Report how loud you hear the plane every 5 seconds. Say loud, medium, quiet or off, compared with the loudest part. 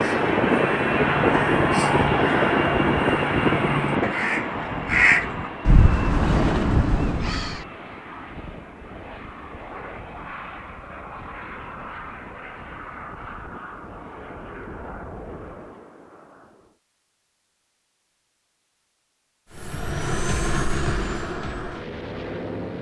loud, quiet, quiet, quiet, medium.